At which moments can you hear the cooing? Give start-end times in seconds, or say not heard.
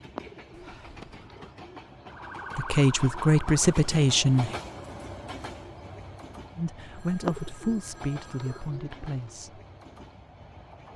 0.1-2.5, 7.2-9.3.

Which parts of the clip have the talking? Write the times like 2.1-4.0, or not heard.
2.5-4.5, 6.5-9.6.